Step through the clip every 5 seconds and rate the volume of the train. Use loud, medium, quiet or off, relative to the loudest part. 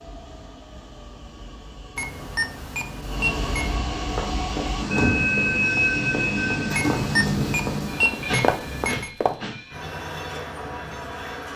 medium, loud, medium.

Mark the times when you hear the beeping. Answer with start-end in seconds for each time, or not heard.
1.9-3.8, 6.7-9.1.